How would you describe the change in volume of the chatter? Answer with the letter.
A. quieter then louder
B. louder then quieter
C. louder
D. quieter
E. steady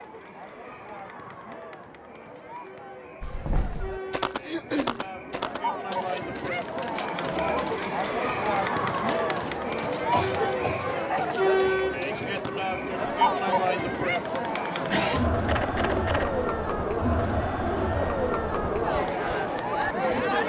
C.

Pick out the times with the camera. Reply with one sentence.
You can hear the camera from 15.4 to 16.3 s.